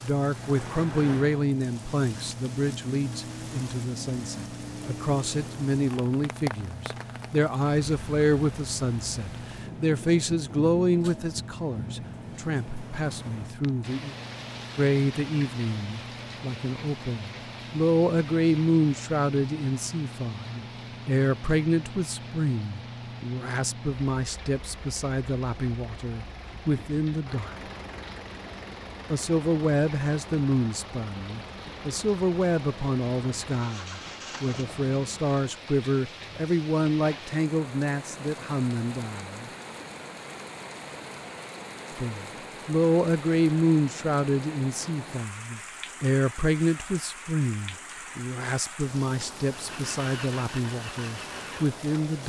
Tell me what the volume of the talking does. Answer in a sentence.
The loudness of the talking stays about the same.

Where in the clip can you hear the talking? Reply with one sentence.
The talking can be heard from 0.0 to 14.2 s, from 14.8 to 27.5 s, from 29.1 to 39.5 s and from 42.0 to 52.2 s.